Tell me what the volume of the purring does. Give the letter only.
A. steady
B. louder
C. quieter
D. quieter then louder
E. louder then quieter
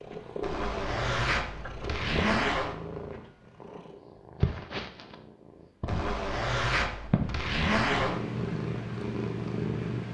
B.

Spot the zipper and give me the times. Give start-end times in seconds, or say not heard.
0.4-2.8, 5.8-8.2.